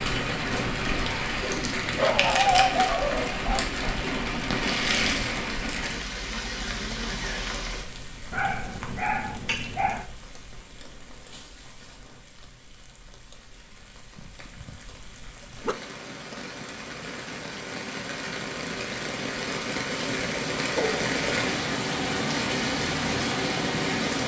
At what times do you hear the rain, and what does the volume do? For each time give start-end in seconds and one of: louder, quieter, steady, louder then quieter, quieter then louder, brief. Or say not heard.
0.0-24.2 quieter then louder.